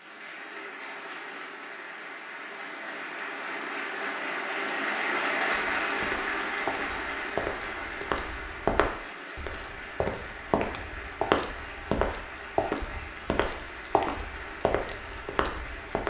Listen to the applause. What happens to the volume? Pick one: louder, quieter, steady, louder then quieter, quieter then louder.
louder then quieter.